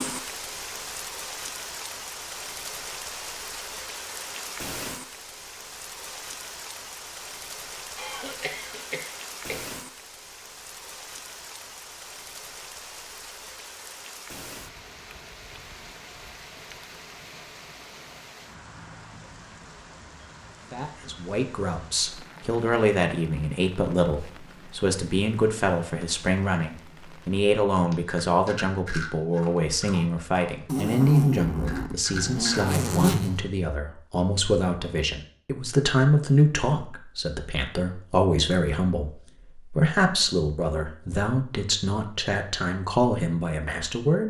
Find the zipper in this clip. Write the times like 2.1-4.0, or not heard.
30.6-33.4.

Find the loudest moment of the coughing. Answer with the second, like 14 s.
8 s.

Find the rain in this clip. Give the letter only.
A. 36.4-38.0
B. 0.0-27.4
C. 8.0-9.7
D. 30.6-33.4
B.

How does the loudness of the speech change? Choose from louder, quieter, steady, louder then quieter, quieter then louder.
steady.